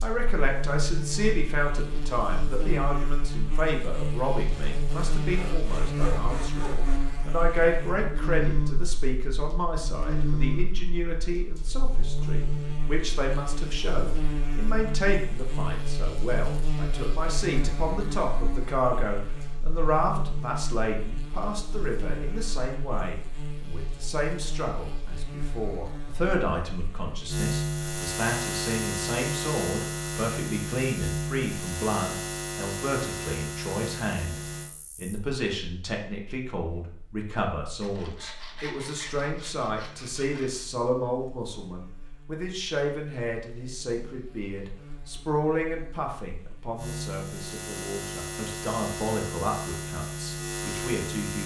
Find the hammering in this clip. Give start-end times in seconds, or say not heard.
not heard.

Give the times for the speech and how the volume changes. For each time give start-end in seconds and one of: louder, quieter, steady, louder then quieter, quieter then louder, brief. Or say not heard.
0.0-51.4 steady.